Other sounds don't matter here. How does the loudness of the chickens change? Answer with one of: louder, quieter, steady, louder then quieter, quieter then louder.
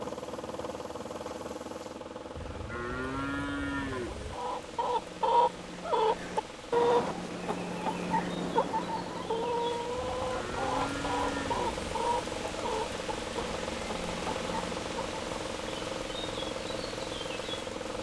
quieter.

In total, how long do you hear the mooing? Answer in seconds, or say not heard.
4 s.